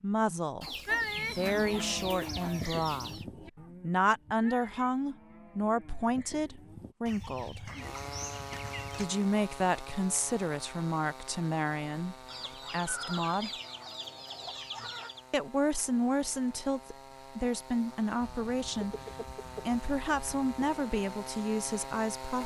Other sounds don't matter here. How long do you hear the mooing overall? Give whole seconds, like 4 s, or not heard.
6 s.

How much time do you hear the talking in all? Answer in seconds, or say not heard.
18 s.